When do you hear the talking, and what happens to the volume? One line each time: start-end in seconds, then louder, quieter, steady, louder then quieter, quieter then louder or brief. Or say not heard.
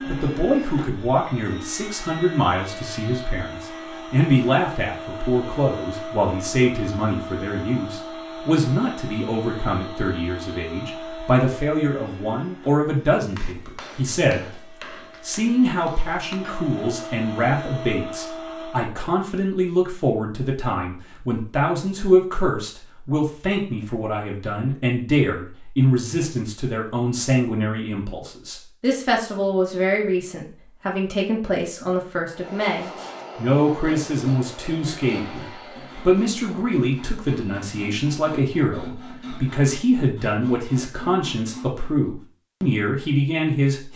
0.1-43.9 steady.